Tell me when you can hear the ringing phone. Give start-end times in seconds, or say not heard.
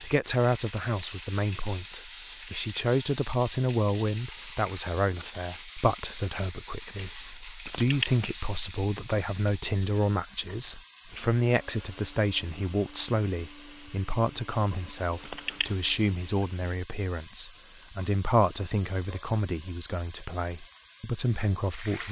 7.7-8.2, 15.2-15.8.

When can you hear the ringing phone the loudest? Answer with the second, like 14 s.
8 s.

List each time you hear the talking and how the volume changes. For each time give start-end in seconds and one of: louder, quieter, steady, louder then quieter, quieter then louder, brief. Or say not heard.
0.0-22.0 steady.